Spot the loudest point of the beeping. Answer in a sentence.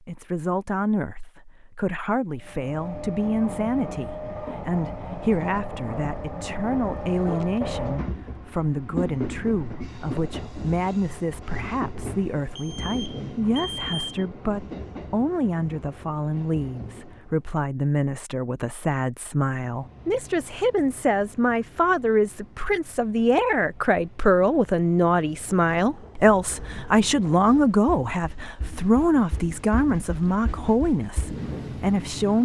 The volume of the beeping peaks at 14 seconds.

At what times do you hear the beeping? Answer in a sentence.
You can hear the beeping from 12.6 to 14.1 s.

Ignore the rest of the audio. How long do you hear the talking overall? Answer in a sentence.
The talking can be heard for 32 seconds in total.